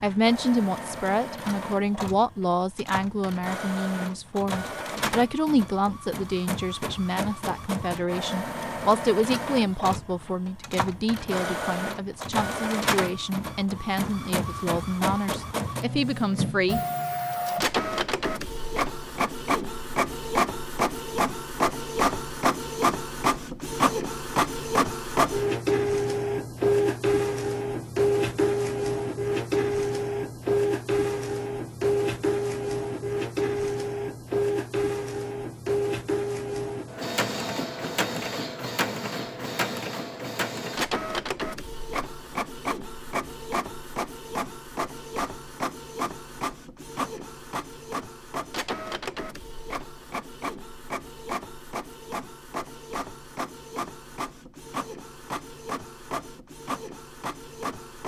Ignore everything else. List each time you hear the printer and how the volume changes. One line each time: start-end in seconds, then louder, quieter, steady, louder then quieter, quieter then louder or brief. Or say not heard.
0.0-58.0 louder then quieter.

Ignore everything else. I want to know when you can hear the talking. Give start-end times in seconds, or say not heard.
0.0-16.8.